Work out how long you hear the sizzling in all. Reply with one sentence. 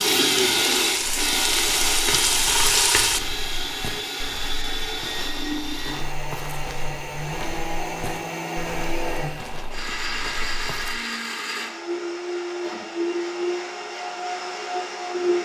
The sizzling can be heard for 3 seconds in total.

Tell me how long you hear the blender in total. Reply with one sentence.
The blender can be heard for 15 seconds in total.